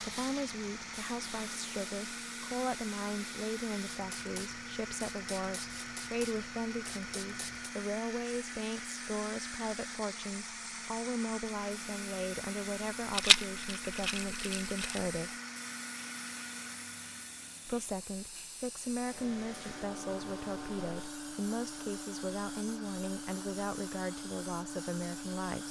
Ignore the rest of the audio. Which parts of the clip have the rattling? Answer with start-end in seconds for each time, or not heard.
13.1-15.1.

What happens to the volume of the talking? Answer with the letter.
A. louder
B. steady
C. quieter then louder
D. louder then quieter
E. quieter
B.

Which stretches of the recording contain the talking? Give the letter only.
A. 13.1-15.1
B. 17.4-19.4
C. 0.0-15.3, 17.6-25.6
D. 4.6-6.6
C.